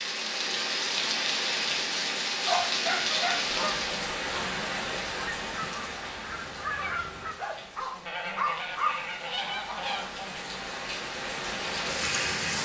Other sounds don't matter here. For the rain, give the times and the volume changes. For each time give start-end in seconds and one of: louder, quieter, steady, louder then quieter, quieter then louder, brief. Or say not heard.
0.0-12.5 quieter then louder.